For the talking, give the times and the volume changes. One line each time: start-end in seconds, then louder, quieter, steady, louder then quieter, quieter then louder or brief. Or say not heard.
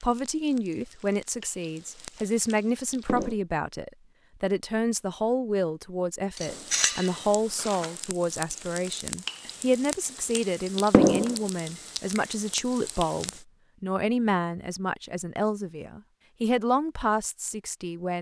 0.0-18.1 steady.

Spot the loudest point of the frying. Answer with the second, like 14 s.
11 s.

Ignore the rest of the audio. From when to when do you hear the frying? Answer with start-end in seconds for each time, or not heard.
0.0-3.4, 6.3-13.4.